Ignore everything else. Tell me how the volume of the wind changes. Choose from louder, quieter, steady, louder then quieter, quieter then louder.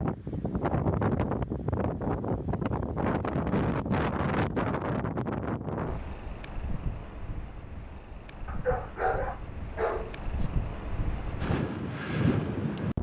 quieter then louder.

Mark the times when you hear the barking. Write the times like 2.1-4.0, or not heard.
8.4-10.4.